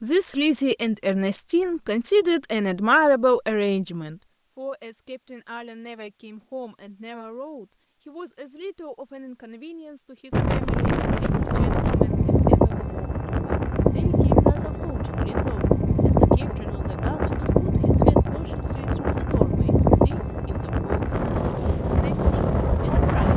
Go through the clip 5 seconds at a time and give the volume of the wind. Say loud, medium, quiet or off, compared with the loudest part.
off, off, loud, loud, loud.